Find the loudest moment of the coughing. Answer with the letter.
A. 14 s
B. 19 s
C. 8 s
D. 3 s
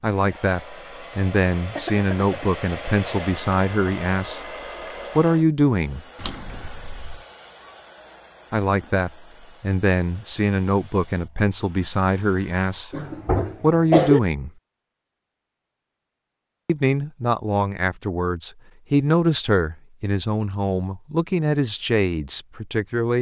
A.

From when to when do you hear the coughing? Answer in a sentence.
The coughing can be heard from 1.8 to 2.5 s and from 12.9 to 14.2 s.